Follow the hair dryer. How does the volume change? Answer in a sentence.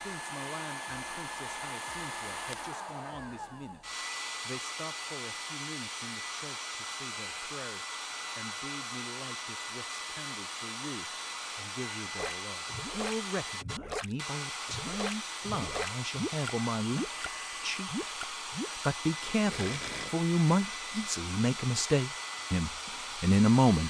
The loudness of the hair dryer stays about the same.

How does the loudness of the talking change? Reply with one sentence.
The volume of the talking goes up.